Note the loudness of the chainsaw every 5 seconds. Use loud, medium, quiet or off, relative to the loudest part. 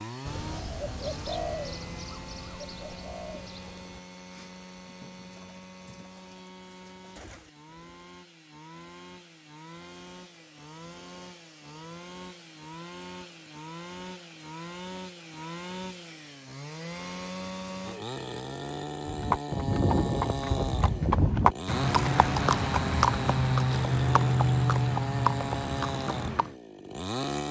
medium, quiet, medium, loud, loud, loud.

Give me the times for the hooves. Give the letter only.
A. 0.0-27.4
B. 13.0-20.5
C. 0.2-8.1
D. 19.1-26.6
D.